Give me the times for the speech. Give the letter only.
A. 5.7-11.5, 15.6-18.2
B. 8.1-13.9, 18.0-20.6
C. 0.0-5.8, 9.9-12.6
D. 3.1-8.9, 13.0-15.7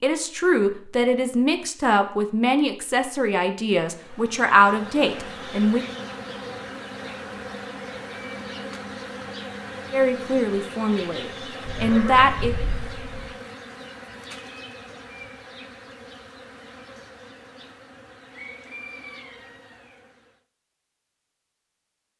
C.